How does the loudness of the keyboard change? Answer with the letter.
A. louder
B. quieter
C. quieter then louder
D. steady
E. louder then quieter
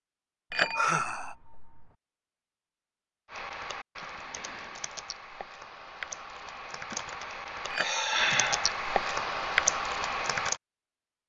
A.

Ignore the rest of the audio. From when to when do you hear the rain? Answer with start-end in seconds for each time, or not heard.
not heard.